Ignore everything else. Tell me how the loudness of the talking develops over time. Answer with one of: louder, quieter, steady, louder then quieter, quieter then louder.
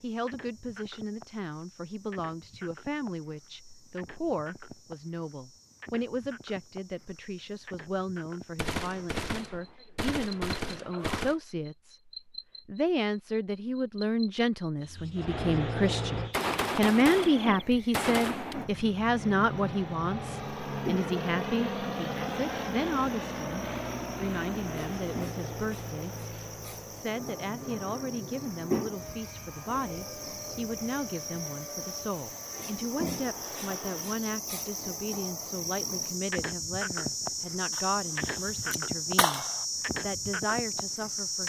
louder then quieter.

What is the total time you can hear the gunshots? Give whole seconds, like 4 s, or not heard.
7 s.